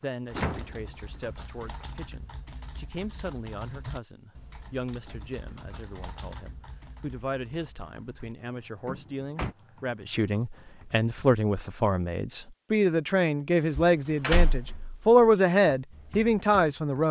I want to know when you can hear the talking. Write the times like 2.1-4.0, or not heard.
0.0-17.0.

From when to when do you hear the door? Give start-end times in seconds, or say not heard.
0.3-1.9, 8.8-9.6, 13.8-15.3.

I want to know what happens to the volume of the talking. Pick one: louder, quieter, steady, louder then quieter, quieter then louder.
louder.